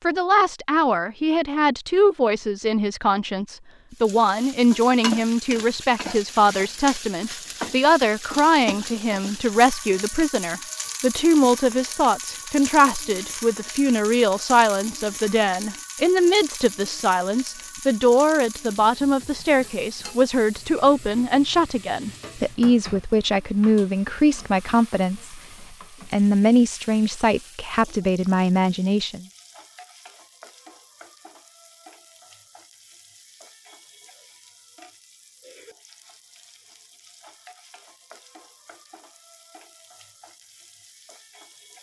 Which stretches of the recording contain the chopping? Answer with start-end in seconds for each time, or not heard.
not heard.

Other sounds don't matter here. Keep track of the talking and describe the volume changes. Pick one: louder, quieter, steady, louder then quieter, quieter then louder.
steady.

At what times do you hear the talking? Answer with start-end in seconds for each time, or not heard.
0.0-25.4, 26.1-29.2.